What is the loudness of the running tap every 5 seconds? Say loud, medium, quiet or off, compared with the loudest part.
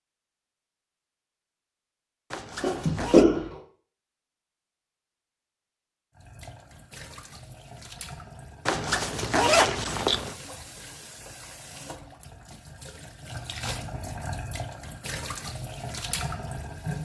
off, medium, medium, loud.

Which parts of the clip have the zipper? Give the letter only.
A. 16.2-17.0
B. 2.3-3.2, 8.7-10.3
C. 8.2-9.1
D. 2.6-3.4
B.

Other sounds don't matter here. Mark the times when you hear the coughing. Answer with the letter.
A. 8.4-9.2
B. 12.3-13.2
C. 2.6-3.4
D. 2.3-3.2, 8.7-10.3
C.